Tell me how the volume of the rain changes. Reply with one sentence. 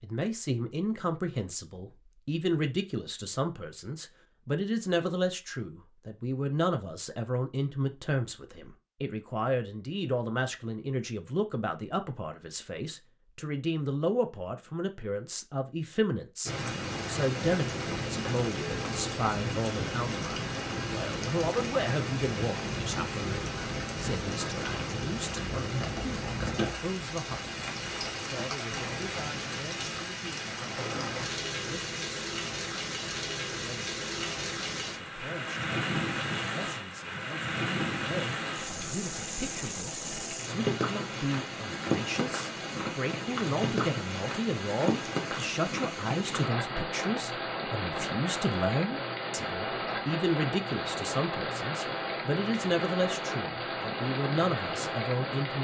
The volume of the rain stays about the same.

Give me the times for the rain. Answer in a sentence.
You can hear the rain from 16.4 to 55.6 s.